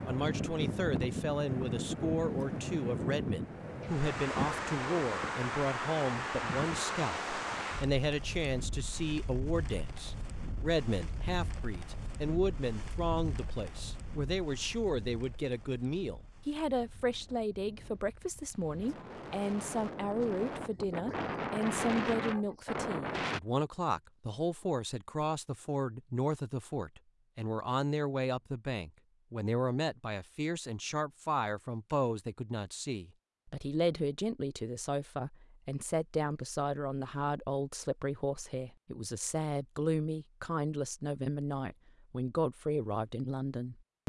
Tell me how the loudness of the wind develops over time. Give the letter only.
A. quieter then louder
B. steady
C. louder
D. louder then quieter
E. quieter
A.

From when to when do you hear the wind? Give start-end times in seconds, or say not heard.
0.0-23.4.